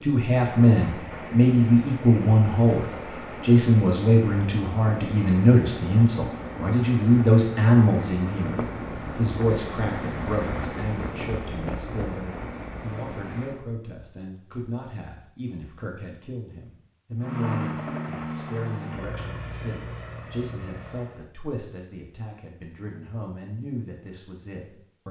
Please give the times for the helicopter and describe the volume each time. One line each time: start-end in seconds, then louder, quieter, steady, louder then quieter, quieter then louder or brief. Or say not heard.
17.2-21.2 quieter.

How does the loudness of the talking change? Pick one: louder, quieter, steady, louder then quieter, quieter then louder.
quieter.